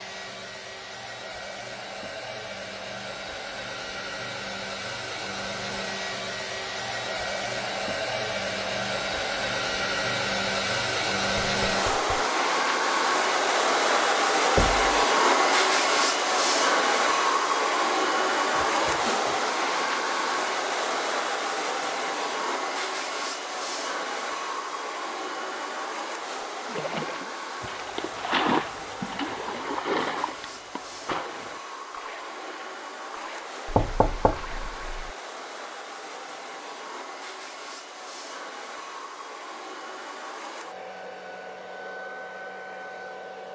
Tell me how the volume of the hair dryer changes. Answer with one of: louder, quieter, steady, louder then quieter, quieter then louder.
louder then quieter.